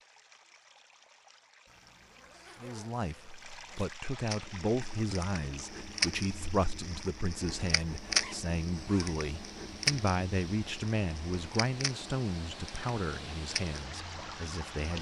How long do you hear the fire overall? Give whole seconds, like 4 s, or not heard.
11 s.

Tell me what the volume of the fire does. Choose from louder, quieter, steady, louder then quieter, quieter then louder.
quieter.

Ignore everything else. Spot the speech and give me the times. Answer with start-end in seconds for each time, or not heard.
2.6-14.9.